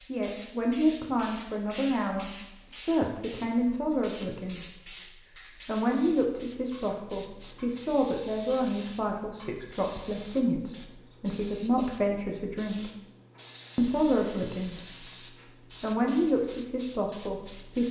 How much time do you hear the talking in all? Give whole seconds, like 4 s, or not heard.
15 s.